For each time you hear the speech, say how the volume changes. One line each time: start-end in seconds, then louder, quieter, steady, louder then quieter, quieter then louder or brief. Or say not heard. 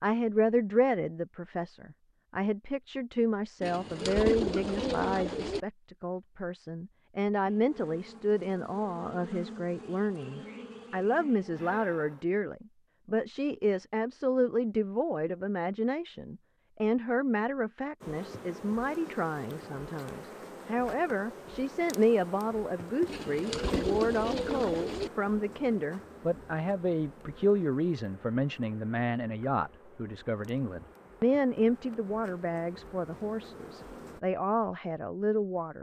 0.0-35.7 steady.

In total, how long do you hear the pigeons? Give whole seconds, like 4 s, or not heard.
4 s.